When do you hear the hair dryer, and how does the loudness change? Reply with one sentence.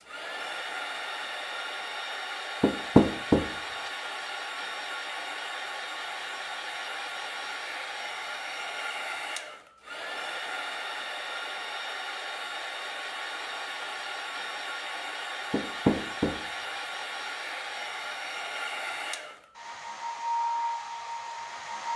The hair dryer can be heard from 0.0 to 21.9 s, at a steady volume.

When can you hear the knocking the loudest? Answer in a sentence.
The loudest moment of the knocking is at 3 seconds.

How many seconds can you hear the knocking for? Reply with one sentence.
You can hear the knocking for 2 seconds altogether.